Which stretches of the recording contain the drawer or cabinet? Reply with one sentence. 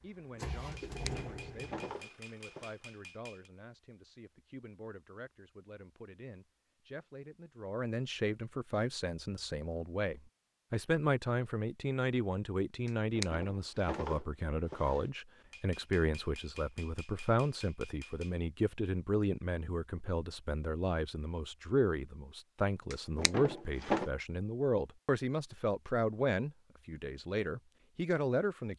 The drawer or cabinet can be heard from 0.7 to 2.7 s, from 12.8 to 15.0 s and from 22.9 to 24.1 s.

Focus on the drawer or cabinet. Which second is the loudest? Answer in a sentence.
The loudest moment of the drawer or cabinet is at 24 seconds.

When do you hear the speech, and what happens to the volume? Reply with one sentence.
The speech can be heard from 0.0 to 28.7 s, getting louder.